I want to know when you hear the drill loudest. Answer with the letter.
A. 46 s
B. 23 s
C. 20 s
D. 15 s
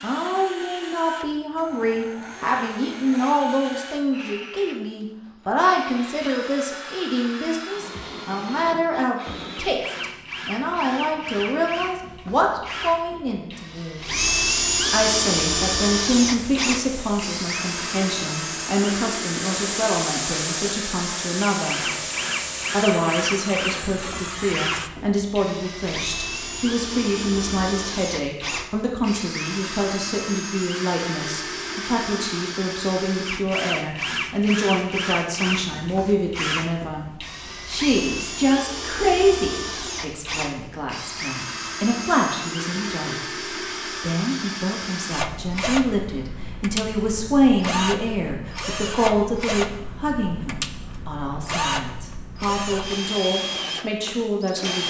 D.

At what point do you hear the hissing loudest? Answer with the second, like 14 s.
20 s.